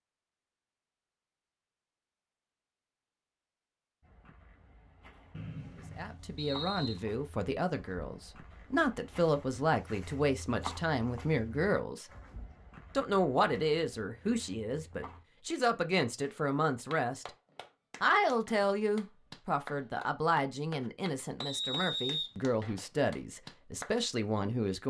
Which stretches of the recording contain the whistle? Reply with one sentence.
You can hear the whistle from 5.3 to 7.0 s and from 21.4 to 22.3 s.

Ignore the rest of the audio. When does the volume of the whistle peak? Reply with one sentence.
The volume of the whistle peaks at 22 seconds.